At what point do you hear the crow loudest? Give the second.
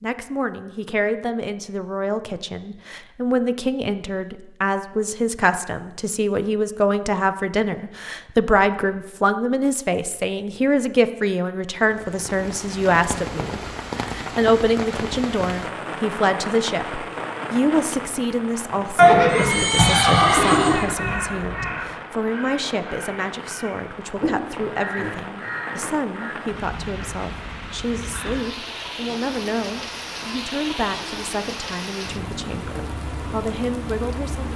20 s.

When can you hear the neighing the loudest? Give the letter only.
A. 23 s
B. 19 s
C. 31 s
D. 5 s
B.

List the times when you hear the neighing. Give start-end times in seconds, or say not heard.
18.9-20.9.